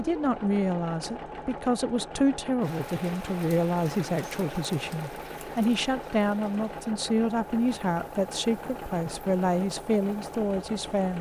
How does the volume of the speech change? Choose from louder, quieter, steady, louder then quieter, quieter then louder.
steady.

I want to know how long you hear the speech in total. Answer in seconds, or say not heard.
11 s.